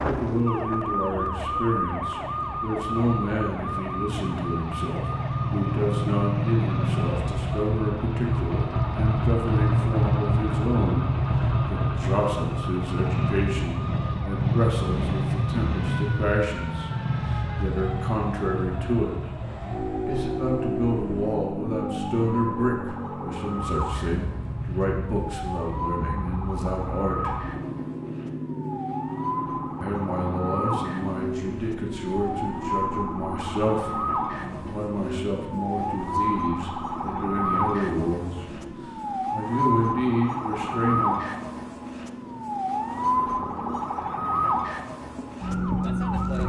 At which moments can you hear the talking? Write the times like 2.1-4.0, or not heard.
0.0-11.1, 11.7-19.3, 20.1-27.4, 29.8-38.5, 39.3-41.1.